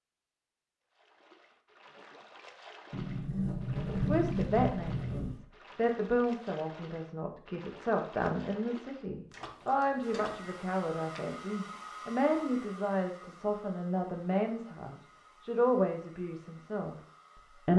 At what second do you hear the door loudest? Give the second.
4 s.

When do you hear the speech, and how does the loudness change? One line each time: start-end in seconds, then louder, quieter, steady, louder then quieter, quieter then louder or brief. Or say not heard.
4.0-17.7 steady.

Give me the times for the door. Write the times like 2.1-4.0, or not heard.
2.9-5.4, 9.3-10.3.